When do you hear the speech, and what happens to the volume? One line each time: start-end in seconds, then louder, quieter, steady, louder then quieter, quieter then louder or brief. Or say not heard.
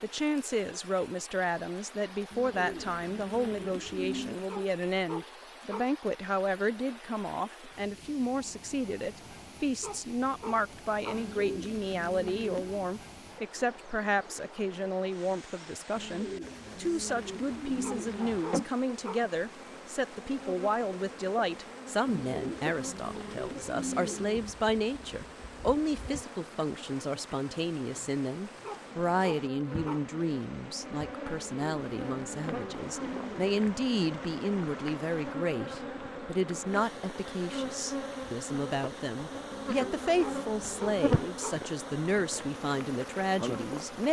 0.0-44.0 steady.